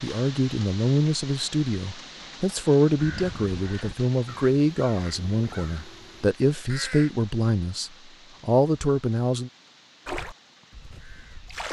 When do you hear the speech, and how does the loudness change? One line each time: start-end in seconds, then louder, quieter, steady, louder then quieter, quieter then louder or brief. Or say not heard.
0.0-9.5 steady.